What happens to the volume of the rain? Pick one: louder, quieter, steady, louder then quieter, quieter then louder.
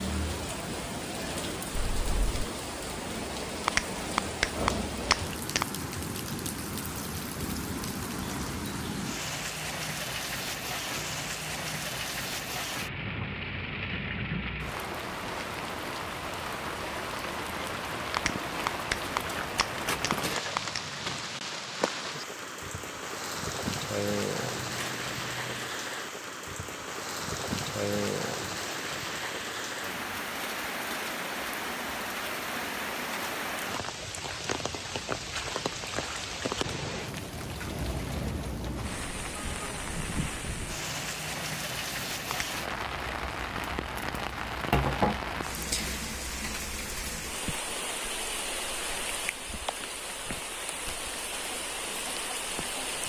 steady.